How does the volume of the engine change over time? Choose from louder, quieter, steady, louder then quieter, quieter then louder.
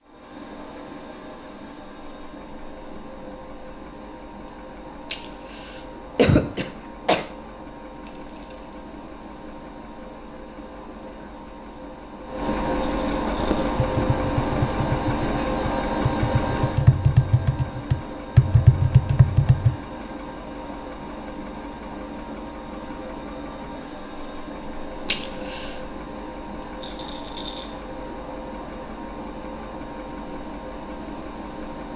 louder then quieter.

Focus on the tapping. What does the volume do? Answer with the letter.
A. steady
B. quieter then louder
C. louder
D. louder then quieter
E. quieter
C.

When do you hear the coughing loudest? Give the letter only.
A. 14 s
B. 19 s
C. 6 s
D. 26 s
C.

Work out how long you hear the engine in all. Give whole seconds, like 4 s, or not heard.
32 s.